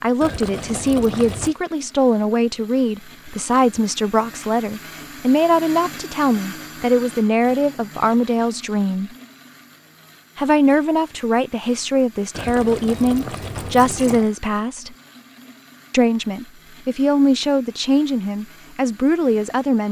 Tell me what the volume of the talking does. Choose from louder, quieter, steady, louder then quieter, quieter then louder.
steady.